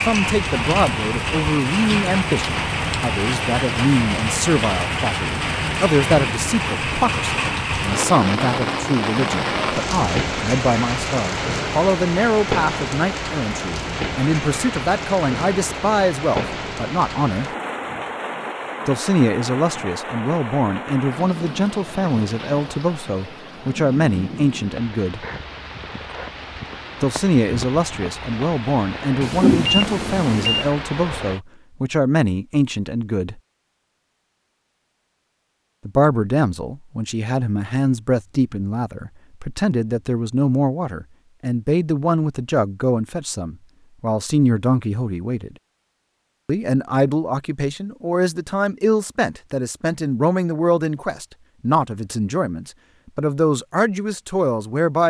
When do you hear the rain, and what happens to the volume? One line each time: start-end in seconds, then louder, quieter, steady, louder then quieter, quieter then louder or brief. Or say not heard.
0.0-31.4 quieter.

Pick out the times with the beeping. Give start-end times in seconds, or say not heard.
29.2-30.7.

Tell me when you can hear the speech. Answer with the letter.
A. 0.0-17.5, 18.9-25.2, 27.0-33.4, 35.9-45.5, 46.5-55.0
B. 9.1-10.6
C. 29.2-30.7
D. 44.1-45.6
A.